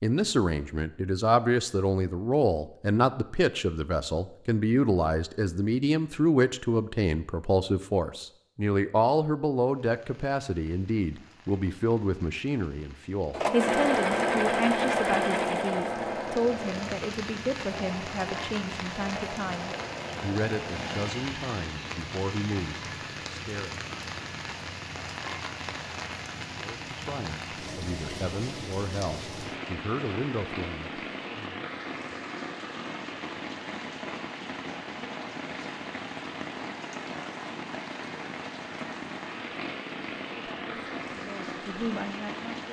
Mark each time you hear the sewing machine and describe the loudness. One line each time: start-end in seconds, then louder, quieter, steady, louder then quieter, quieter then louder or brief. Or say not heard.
13.3-21.1 quieter.